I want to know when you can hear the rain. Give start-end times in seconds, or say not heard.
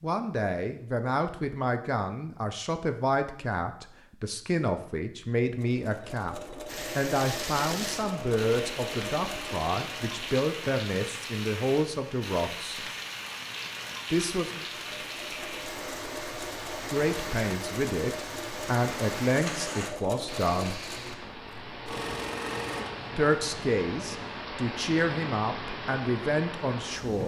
6.7-27.2.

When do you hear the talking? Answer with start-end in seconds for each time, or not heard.
0.0-12.8, 14.1-14.7, 16.9-20.8, 23.1-27.2.